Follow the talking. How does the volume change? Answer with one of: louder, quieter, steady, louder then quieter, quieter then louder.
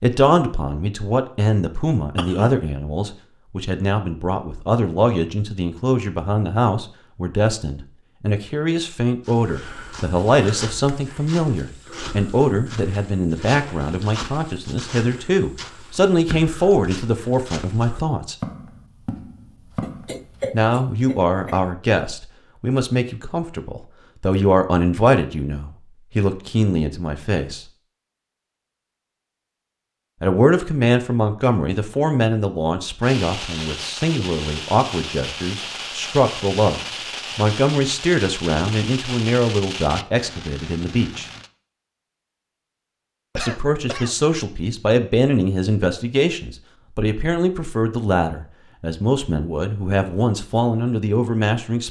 steady.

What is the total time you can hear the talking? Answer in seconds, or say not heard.
45 s.